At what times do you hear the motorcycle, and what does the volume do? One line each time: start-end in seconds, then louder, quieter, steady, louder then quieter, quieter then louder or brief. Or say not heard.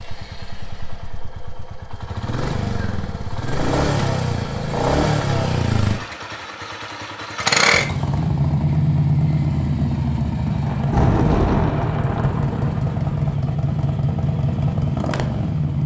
0.0-15.8 louder.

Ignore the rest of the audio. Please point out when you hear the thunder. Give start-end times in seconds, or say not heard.
10.4-13.2.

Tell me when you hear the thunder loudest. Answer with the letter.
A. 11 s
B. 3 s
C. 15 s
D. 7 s
A.